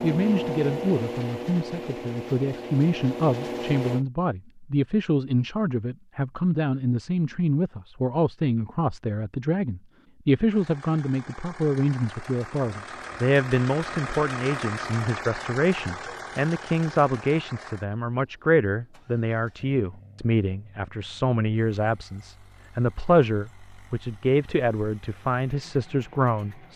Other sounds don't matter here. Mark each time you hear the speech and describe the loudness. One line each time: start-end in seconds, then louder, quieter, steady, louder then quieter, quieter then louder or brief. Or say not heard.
0.0-26.7 steady.